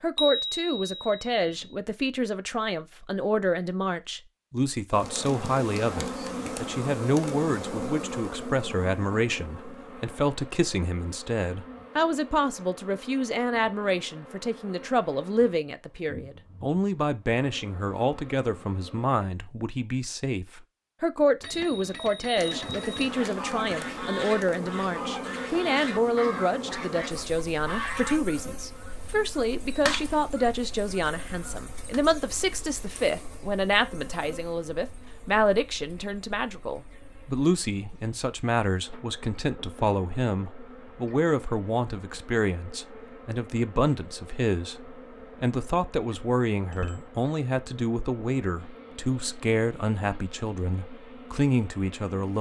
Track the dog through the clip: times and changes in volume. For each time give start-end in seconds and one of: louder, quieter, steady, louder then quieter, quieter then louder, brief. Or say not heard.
not heard.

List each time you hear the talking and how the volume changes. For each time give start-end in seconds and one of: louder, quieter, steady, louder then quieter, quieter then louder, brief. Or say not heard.
0.0-52.3 steady.